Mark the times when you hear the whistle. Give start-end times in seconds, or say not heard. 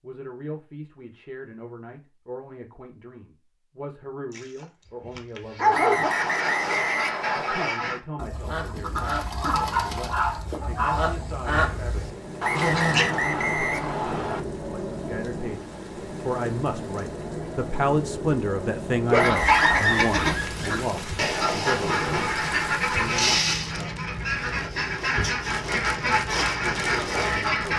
5.7-7.8, 12.4-14.4, 19.1-20.1.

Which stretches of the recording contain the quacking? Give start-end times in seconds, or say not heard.
6.0-13.1, 19.2-27.7.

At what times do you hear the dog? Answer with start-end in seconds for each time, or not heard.
4.3-6.1, 9.4-11.1, 19.1-20.5.